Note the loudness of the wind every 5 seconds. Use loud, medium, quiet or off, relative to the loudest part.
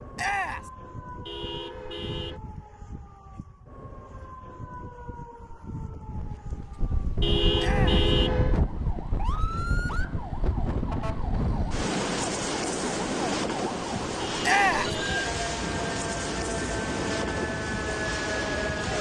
off, loud, loud, loud.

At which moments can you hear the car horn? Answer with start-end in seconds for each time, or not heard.
1.2-2.4, 7.2-8.6, 14.2-15.3.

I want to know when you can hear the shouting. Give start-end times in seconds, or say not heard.
0.1-0.7, 7.5-8.1, 14.4-14.9.